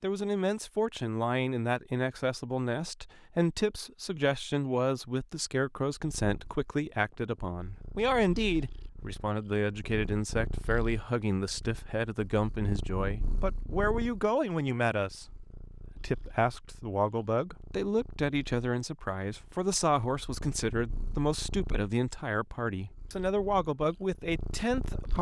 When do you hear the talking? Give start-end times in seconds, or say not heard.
0.0-25.1.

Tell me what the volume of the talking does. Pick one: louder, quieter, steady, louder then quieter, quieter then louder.
steady.